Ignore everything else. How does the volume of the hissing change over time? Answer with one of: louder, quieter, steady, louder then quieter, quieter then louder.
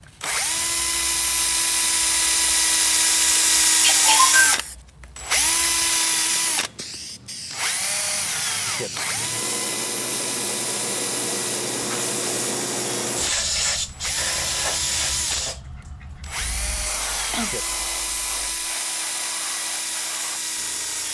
louder then quieter.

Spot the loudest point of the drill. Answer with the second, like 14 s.
4 s.